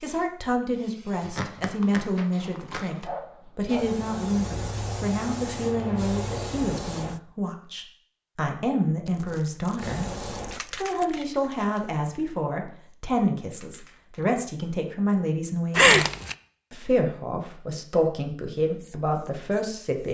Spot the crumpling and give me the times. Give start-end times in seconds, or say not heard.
1.2-3.1, 9.1-11.3, 15.7-16.4.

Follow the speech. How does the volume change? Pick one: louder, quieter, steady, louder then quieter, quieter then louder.
steady.